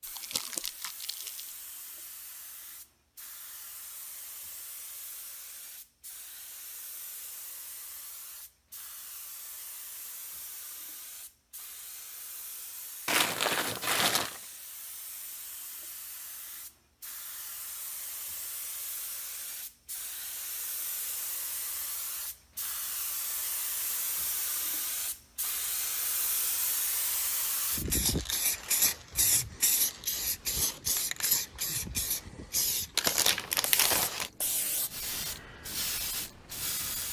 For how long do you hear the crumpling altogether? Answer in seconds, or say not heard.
4 s.